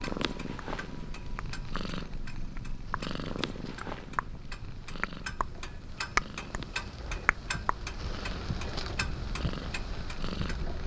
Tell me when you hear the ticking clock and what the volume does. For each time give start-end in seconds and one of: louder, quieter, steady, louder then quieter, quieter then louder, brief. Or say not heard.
0.0-10.7 louder then quieter.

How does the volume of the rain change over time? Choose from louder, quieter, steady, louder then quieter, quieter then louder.
louder.